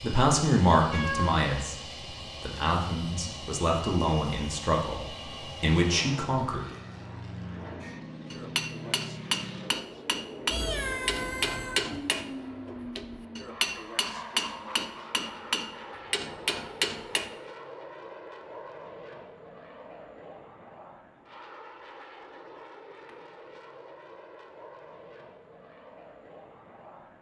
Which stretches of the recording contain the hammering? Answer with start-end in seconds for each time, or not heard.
7.8-17.4.